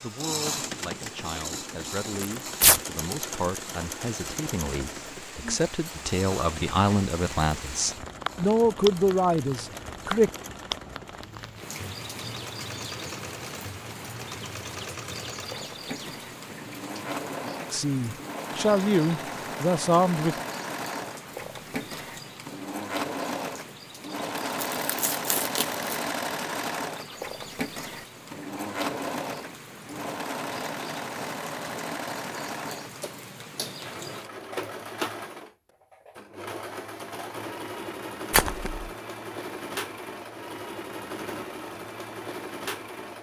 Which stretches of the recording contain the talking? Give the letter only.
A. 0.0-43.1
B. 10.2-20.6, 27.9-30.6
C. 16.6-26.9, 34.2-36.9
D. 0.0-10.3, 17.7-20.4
D.